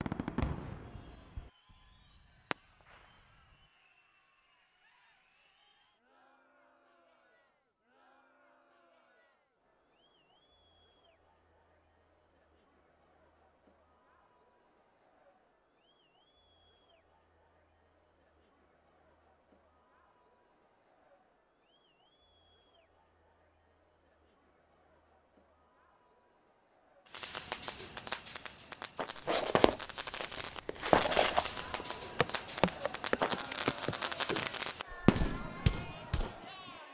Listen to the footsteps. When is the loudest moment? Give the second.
31 s.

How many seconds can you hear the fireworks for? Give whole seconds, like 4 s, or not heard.
13 s.